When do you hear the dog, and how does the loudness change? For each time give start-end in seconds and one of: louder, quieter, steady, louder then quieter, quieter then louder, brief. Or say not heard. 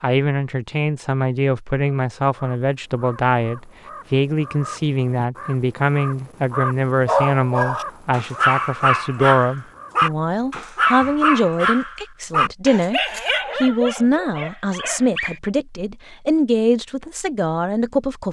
7.0-15.4 quieter.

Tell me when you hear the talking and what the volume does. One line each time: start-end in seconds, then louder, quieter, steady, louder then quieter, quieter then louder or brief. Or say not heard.
0.0-18.2 steady.